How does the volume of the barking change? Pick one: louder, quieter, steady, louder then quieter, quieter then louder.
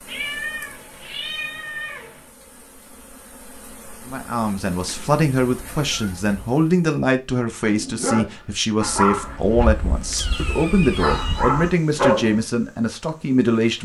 quieter then louder.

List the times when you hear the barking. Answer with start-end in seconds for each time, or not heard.
7.6-12.3.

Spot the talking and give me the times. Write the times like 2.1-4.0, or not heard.
4.0-13.8.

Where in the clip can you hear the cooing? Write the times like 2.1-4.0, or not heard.
not heard.